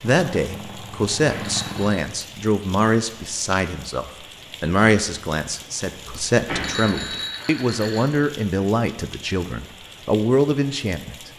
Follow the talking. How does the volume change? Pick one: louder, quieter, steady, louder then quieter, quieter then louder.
steady.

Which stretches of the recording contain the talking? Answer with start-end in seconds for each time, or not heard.
0.0-11.3.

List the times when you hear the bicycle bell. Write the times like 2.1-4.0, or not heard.
1.2-2.0, 6.5-8.1.